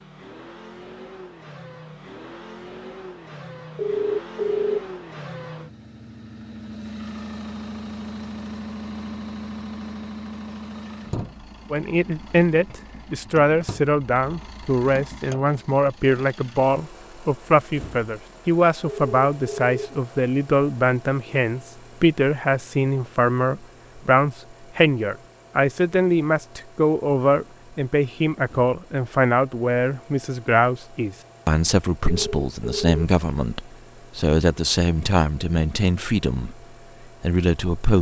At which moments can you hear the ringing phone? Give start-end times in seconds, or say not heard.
3.8-4.8, 18.9-19.8, 32.0-33.0.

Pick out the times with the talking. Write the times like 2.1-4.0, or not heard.
11.7-36.5, 37.2-37.9.